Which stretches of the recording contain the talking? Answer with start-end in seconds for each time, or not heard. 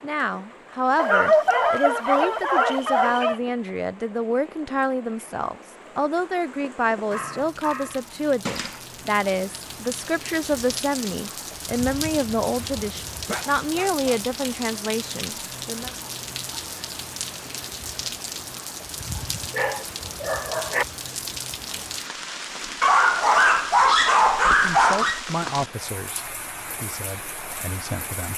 0.0-15.9, 24.5-28.3.